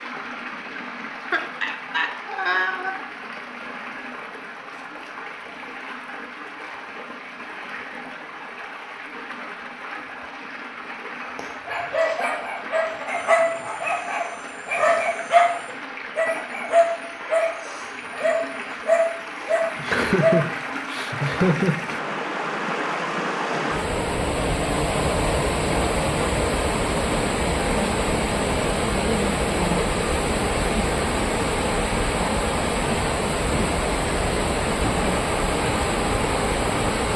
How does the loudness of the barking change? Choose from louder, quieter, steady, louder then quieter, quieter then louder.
louder.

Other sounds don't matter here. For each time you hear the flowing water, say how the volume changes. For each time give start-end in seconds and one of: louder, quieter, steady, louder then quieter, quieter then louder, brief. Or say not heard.
0.0-37.1 louder.